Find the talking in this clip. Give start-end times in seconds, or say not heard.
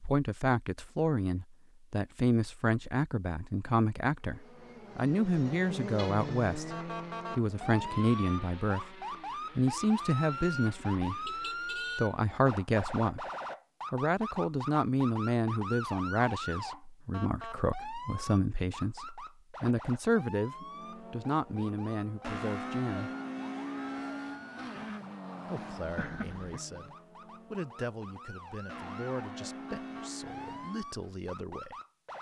0.0-6.8, 7.3-8.9, 9.6-13.2, 13.9-23.1, 25.4-31.8.